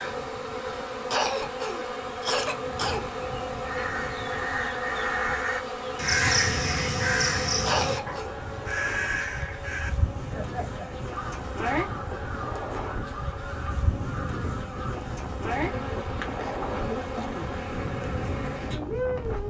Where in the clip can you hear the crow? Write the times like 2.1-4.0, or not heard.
3.6-15.0.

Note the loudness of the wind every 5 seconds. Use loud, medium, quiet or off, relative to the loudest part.
medium, medium, loud, loud.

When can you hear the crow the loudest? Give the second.
6 s.